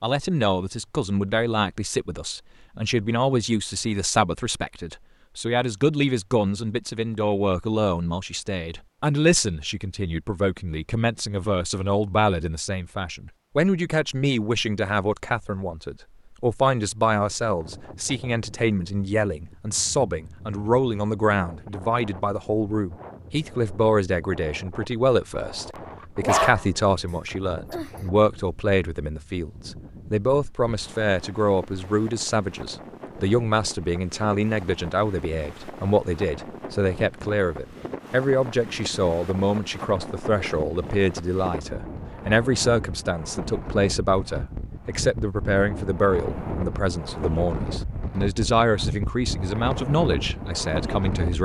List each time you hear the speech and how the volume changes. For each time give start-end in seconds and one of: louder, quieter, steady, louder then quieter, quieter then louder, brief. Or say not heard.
0.0-51.3 steady.